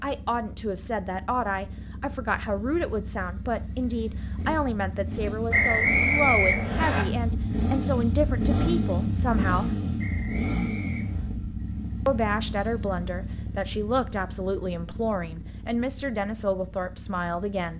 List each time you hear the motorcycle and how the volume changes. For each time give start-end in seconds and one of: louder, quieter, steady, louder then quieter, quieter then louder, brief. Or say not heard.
0.0-17.7 louder then quieter.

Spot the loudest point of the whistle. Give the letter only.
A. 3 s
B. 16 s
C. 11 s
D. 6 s
D.